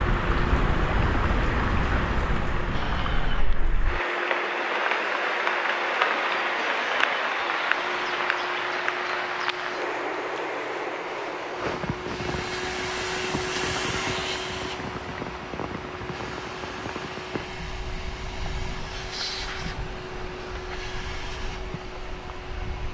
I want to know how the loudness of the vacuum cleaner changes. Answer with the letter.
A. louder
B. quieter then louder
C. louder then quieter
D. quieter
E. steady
E.